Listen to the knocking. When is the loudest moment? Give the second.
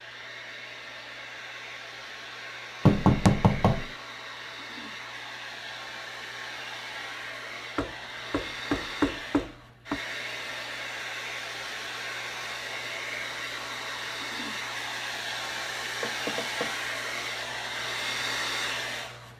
3 s.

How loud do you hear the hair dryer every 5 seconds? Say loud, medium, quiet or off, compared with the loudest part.
medium, medium, loud, loud.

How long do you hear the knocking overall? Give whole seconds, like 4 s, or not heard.
4 s.